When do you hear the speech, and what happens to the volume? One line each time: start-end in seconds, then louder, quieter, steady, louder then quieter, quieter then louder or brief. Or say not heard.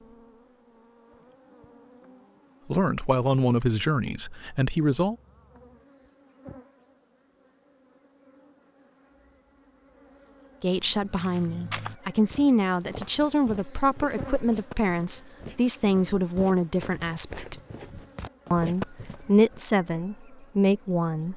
2.7-5.2 brief
10.6-17.6 steady
18.5-21.3 brief.